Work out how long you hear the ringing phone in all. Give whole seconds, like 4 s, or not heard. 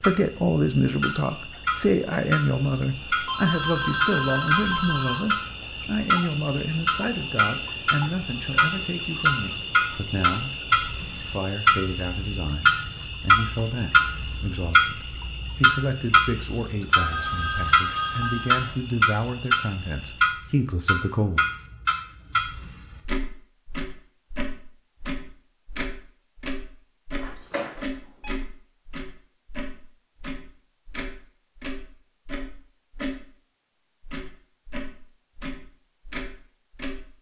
5 s.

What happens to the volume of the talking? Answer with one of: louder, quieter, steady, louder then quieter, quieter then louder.
quieter.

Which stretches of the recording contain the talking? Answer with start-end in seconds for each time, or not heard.
0.0-21.4.